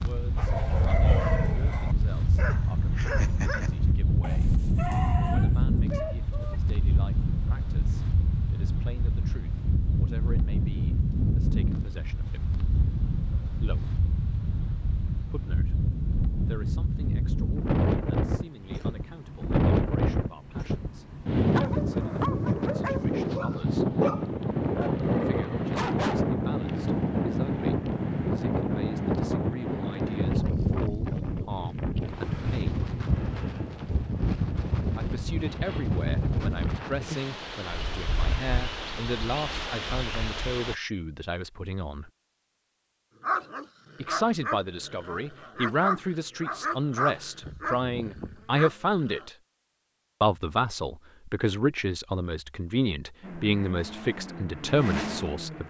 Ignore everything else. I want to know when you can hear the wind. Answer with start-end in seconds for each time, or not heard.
0.0-40.8.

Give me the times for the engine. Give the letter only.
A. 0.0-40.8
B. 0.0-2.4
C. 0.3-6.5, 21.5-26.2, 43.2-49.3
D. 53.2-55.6
D.